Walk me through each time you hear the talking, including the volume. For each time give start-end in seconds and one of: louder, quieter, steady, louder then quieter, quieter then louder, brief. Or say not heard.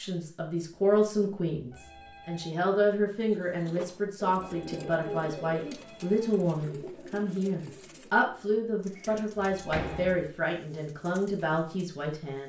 0.0-12.4 steady.